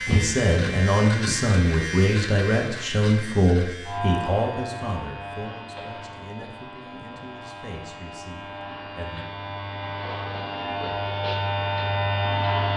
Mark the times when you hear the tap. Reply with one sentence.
You can't hear the tap here.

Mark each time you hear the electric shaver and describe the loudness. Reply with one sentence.
The electric shaver can be heard from 0.0 to 12.7 s, getting quieter then louder.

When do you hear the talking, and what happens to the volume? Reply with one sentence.
You can hear the talking from 0.1 to 9.2 s, getting quieter.